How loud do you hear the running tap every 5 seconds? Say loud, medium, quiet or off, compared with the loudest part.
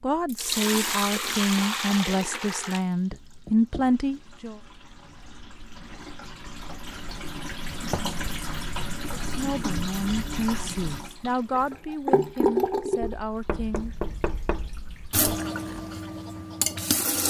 loud, medium, loud, loud.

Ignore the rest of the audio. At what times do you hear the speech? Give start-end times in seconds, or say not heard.
0.0-4.6, 9.2-13.9.